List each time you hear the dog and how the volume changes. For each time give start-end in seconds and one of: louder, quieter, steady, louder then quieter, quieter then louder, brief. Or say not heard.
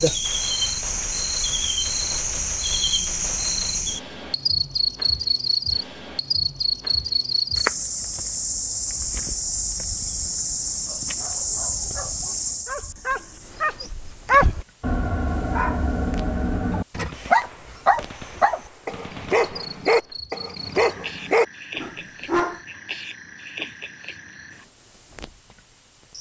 10.8-22.6 louder.